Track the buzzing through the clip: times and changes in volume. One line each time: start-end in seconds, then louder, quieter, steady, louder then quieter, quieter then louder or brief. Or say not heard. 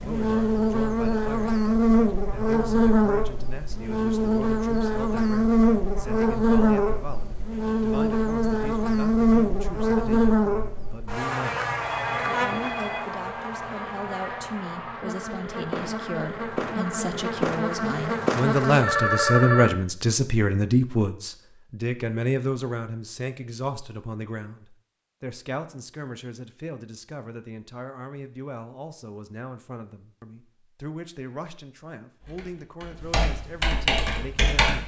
0.0-18.9 quieter.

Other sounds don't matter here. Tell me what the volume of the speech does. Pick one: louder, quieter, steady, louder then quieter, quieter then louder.
louder then quieter.